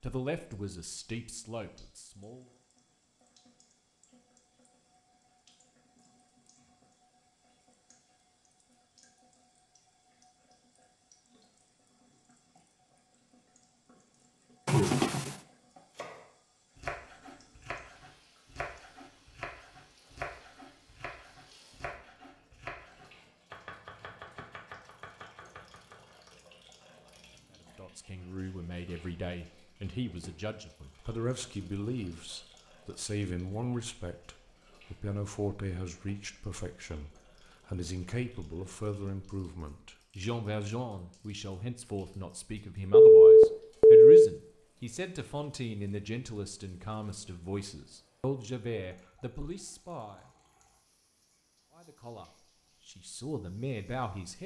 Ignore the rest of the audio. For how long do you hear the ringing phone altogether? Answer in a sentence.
The ringing phone can be heard for 2 seconds in total.